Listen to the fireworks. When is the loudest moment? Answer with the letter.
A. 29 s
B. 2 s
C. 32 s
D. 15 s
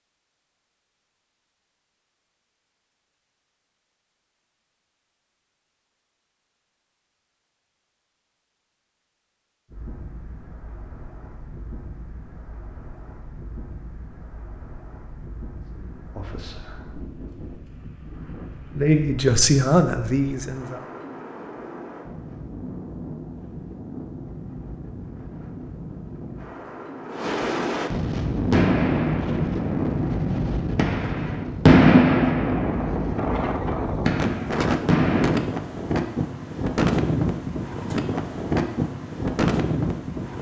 C.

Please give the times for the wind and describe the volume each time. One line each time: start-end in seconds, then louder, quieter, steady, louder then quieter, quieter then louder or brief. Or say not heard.
9.7-40.3 louder.